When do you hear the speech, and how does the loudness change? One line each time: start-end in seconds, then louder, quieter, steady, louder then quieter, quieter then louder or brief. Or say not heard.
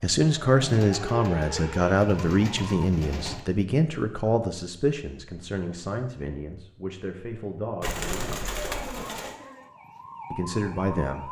0.0-8.6 quieter
10.3-11.2 brief.